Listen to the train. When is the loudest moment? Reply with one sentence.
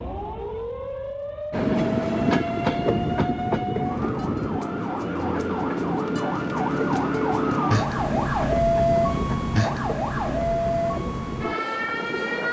The volume of the train peaks at 2 seconds.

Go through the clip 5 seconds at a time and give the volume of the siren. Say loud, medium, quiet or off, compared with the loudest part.
medium, loud, loud.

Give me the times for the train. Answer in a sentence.
The train can be heard from 1.5 to 12.4 s.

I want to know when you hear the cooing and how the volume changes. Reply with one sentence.
The cooing can't be heard in this clip.